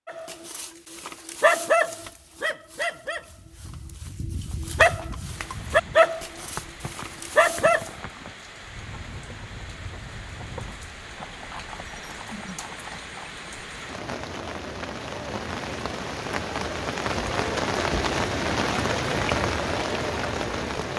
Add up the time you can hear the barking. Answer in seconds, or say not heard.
8 s.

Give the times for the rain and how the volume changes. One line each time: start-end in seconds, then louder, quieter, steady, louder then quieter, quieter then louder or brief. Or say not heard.
5.2-20.9 louder.